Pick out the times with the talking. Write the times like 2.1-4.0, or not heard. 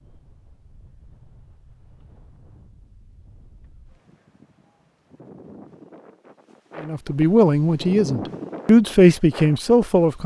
6.8-10.2.